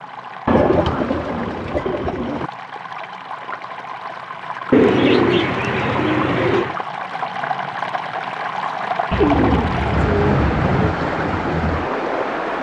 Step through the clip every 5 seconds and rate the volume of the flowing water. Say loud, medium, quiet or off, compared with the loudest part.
medium, loud, loud.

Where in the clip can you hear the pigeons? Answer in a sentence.
The pigeons can be heard from 0.5 to 2.5 s, from 4.7 to 6.8 s and from 9.1 to 10.9 s.